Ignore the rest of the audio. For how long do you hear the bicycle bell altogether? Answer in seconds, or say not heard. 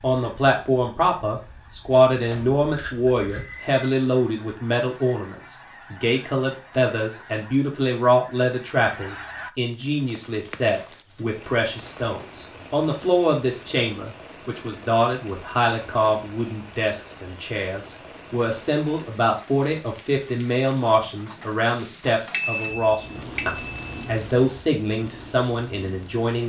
4 s.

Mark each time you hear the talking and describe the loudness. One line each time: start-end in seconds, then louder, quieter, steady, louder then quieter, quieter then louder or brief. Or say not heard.
0.0-26.4 steady.